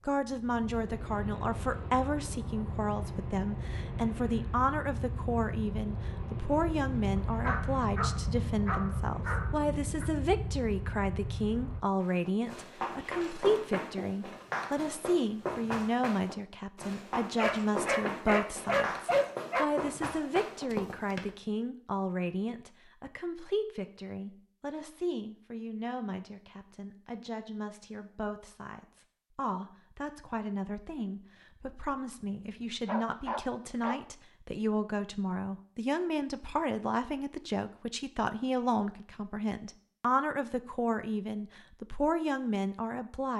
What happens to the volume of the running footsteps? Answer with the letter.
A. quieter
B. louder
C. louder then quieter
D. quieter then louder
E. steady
E.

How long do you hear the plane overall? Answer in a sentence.
The plane can be heard for 12 seconds in total.